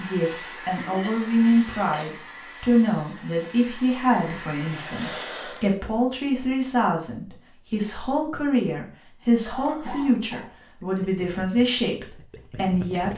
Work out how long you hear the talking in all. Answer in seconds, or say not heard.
13 s.